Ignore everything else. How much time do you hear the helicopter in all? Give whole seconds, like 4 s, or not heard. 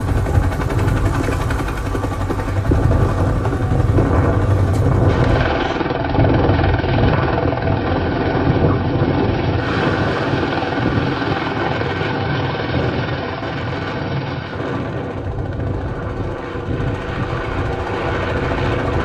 19 s.